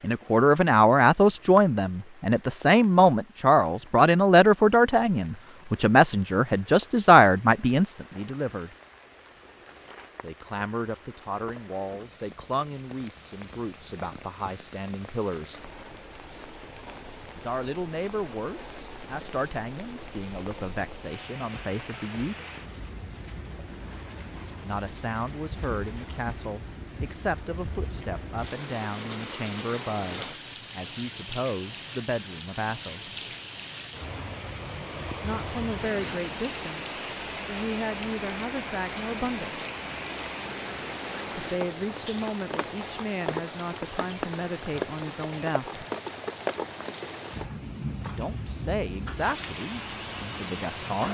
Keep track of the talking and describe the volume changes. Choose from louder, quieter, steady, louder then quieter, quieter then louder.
quieter.